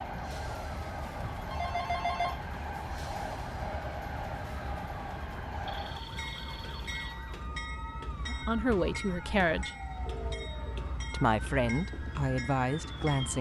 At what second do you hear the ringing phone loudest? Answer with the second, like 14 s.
2 s.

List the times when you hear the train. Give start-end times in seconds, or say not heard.
0.0-13.3.